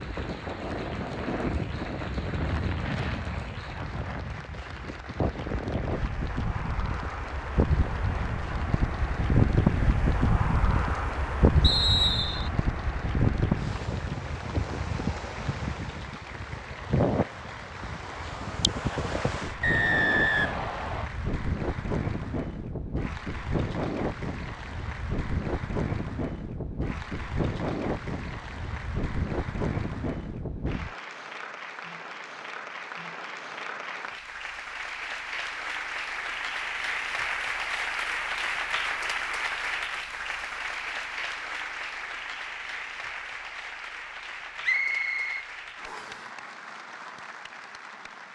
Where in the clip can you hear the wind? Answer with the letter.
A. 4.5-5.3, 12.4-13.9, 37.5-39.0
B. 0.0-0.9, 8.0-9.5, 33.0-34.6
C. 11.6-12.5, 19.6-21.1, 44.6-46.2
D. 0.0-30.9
D.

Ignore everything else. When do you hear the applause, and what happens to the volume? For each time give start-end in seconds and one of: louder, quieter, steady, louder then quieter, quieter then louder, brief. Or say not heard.
0.0-48.3 louder.